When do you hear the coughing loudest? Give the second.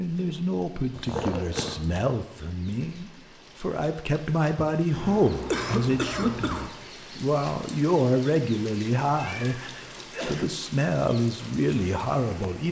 6 s.